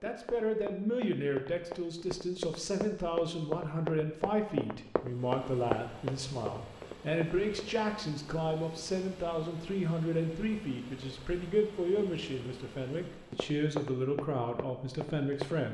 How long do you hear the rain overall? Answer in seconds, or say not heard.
not heard.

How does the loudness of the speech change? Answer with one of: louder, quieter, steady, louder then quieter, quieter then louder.
steady.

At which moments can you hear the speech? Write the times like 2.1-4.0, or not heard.
0.0-15.6.